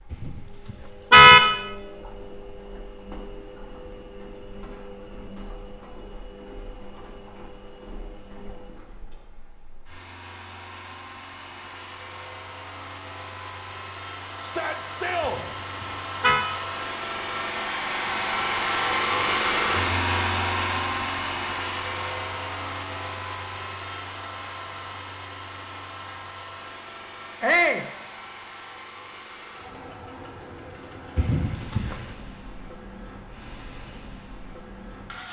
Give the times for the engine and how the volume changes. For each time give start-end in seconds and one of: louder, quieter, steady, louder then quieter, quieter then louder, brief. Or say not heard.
0.0-35.2 louder then quieter.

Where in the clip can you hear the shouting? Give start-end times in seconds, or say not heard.
14.4-15.4, 27.4-27.9.